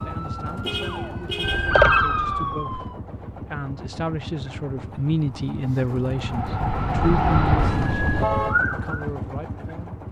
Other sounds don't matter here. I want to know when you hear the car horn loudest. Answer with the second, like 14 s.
8 s.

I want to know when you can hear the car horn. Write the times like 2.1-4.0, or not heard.
0.6-1.9, 7.5-8.6.